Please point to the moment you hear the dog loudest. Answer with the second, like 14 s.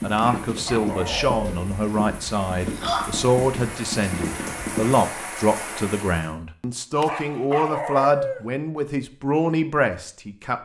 8 s.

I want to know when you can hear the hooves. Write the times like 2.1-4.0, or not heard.
0.0-5.0.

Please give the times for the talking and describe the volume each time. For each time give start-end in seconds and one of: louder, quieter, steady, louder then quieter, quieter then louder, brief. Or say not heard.
0.0-10.6 steady.